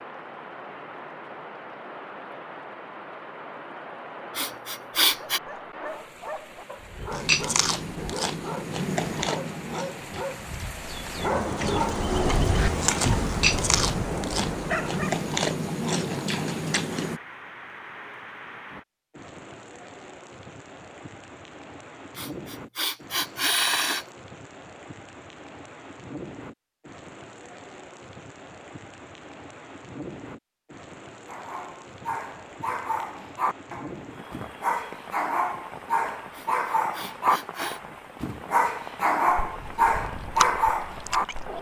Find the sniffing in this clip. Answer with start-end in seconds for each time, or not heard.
4.3-5.4, 22.1-24.1, 36.3-37.8.